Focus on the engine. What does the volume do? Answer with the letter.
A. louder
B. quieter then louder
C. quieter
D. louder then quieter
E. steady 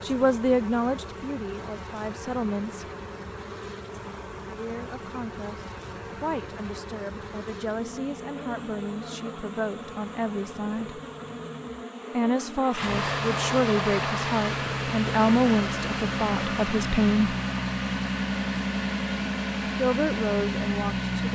A.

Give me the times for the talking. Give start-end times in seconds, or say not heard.
0.1-2.9, 4.5-11.0, 12.1-17.4, 19.8-21.2.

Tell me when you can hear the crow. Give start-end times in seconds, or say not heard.
not heard.